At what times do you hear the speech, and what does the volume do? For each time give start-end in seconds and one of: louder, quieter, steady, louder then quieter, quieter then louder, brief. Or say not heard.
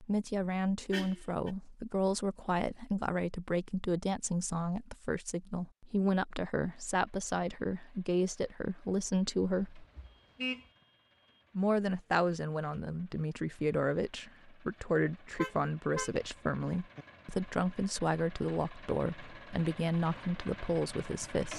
0.0-9.8 steady
11.6-21.5 steady.